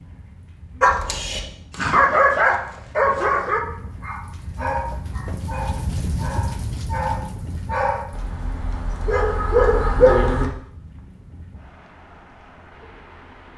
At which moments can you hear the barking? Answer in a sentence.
The barking can be heard from 0.8 to 10.5 s.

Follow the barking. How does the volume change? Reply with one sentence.
The volume of the barking goes down, then up.